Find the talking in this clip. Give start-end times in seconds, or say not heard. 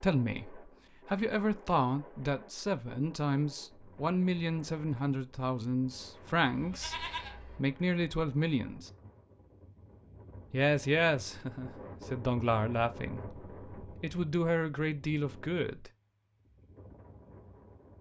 0.0-8.9, 10.5-15.9.